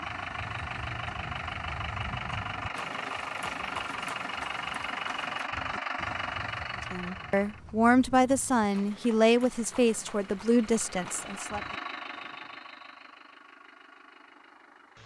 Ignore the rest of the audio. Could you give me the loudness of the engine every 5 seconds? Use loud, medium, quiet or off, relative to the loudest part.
loud, loud, medium.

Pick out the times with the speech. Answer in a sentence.
You can hear the speech from 6.9 to 11.6 s.